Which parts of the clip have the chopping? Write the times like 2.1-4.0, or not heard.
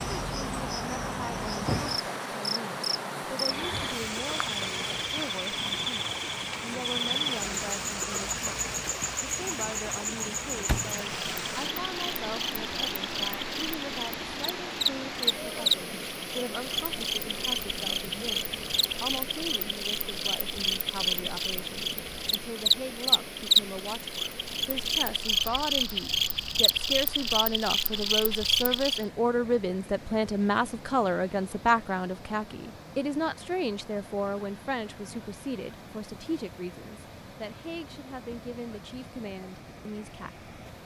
not heard.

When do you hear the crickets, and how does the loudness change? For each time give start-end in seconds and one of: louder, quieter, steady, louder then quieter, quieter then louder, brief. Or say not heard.
0.0-29.1 louder.